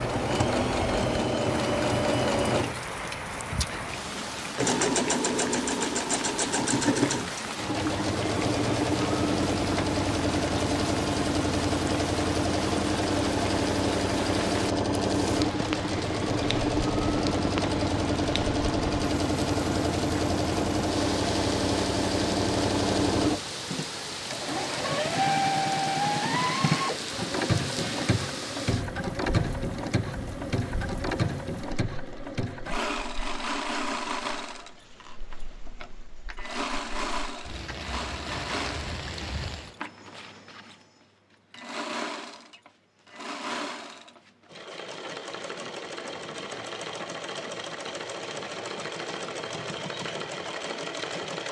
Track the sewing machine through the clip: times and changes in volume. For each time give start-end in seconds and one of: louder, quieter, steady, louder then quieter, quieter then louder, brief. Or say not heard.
0.0-51.4 quieter.